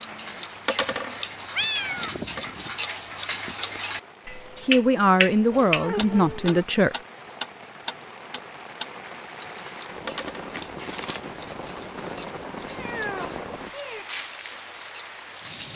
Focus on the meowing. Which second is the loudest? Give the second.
2 s.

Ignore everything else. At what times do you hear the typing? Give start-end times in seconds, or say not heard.
not heard.